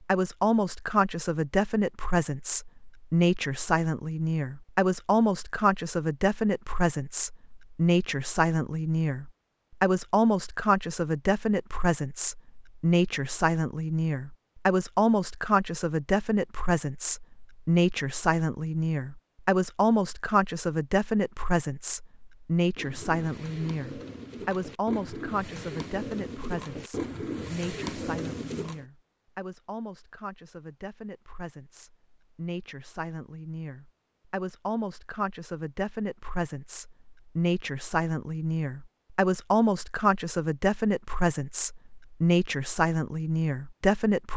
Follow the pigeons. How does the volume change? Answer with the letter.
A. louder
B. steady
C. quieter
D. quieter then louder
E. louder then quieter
A.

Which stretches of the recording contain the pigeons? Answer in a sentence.
The pigeons can be heard from 22.8 to 28.9 s.